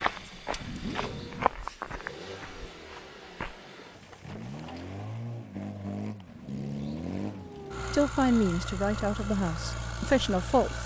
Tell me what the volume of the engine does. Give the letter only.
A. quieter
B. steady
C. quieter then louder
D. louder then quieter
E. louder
E.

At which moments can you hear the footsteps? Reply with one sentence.
You can hear the footsteps from 0.0 to 3.5 s.